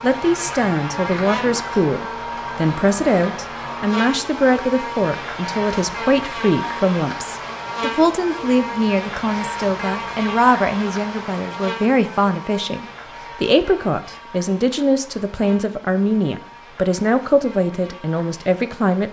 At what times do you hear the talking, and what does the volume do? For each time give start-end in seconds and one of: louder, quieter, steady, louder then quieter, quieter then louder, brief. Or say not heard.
0.0-19.0 steady.